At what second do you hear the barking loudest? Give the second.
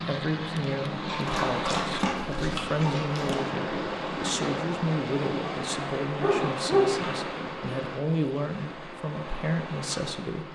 7 s.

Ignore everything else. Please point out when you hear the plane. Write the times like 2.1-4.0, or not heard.
0.0-1.8.